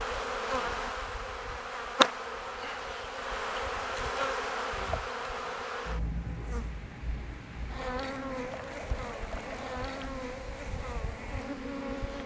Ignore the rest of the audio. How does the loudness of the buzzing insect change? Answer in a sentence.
The loudness of the buzzing insect goes down.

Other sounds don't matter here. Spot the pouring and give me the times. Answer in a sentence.
The pouring can be heard from 8.5 to 10.1 s.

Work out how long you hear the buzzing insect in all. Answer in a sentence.
The buzzing insect can be heard for 12 seconds in total.